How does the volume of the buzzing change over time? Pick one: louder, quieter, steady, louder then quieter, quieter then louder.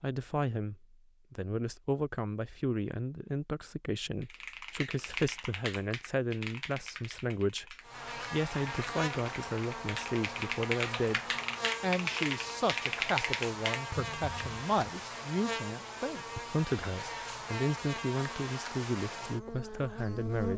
steady.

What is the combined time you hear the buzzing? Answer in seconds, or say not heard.
13 s.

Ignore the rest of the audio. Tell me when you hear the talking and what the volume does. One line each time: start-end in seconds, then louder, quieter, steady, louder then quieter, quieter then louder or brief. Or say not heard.
0.0-11.2 steady
11.8-20.5 steady.